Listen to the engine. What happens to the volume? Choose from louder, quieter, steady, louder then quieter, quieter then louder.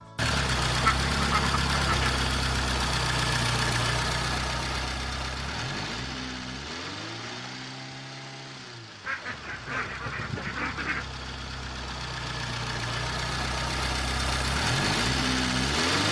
quieter then louder.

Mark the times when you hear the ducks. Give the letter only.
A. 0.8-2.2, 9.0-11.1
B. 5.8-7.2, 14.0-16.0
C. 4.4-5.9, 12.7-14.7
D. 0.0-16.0
A.